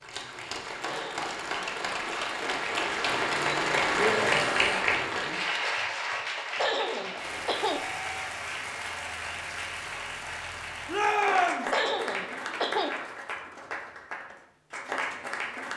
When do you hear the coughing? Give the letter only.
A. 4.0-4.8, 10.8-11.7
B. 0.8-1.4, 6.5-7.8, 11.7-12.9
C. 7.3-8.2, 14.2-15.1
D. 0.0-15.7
B.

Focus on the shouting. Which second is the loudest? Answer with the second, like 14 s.
11 s.